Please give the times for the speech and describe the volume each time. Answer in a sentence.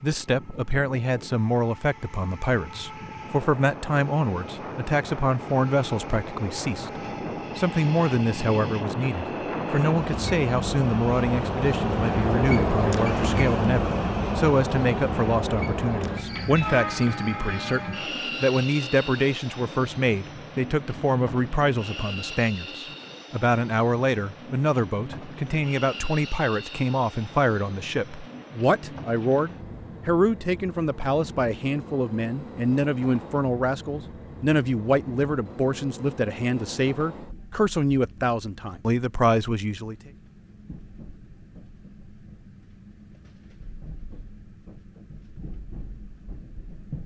You can hear the speech from 0.0 to 40.1 s, at a steady volume.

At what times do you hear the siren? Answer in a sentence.
You can't hear the siren here.